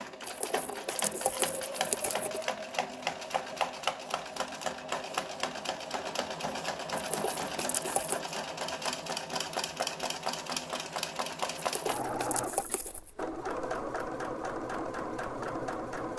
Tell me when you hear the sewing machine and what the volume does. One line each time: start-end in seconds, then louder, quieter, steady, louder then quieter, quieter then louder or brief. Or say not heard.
0.0-16.1 steady.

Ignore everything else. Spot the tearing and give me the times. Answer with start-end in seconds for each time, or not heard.
0.2-2.5, 7.0-8.2, 11.6-13.1.